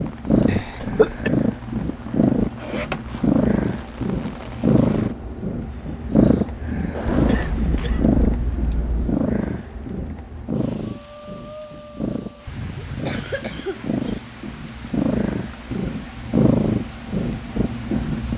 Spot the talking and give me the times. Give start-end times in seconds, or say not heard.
not heard.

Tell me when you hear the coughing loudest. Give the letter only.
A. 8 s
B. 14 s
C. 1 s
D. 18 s
C.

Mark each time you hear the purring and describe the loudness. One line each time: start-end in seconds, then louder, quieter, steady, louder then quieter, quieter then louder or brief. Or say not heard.
0.0-18.3 quieter then louder.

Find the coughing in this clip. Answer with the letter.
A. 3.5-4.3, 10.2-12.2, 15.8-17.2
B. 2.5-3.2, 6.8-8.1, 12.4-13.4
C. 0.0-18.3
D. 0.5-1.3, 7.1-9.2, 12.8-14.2
D.